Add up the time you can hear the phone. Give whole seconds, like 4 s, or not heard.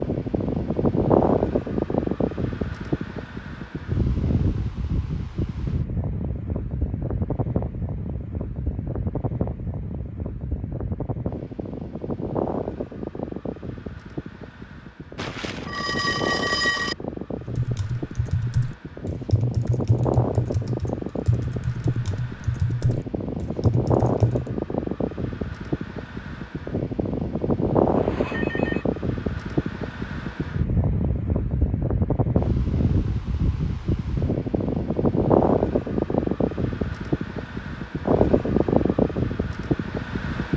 3 s.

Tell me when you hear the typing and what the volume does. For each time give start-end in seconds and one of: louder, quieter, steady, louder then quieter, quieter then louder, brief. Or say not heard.
17.4-24.6 steady.